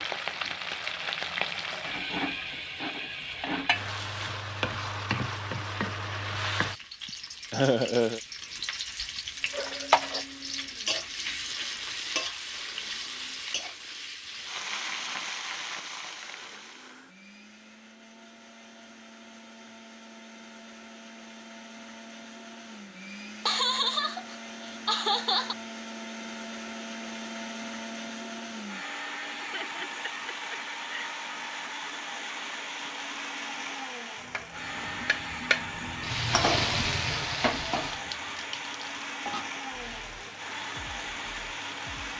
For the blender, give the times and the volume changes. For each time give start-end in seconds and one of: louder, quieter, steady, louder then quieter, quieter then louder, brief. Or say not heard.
9.3-42.1 louder.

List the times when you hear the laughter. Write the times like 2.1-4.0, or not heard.
7.5-8.2, 23.4-25.6, 29.4-31.1.